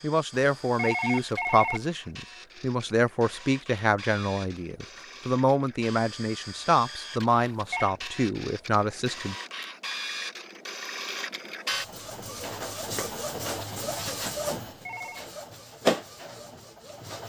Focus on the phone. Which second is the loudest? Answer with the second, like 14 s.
1 s.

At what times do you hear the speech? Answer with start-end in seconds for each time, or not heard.
0.0-9.3.